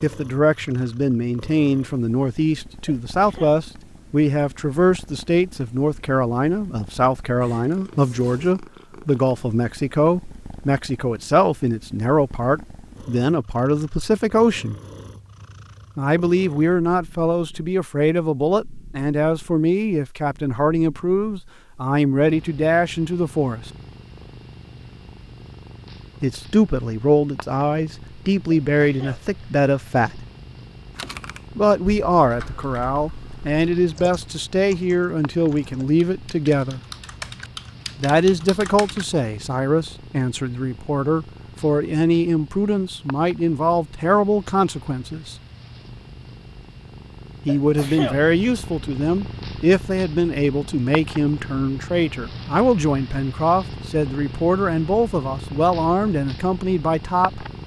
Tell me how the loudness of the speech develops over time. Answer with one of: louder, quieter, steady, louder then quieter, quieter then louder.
steady.